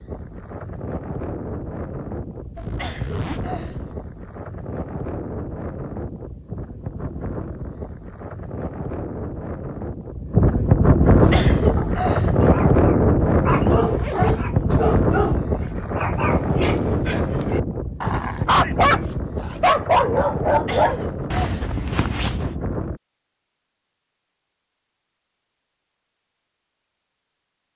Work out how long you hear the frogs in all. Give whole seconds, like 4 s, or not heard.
not heard.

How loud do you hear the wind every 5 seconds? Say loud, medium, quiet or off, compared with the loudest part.
quiet, quiet, loud, medium, medium, off.